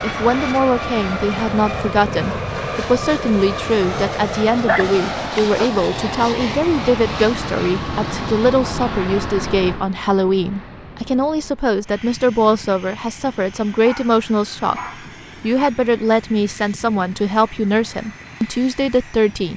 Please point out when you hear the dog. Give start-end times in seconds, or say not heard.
4.6-5.7, 13.8-15.7.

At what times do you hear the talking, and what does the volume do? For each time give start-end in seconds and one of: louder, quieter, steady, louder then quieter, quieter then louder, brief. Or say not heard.
0.0-19.5 steady.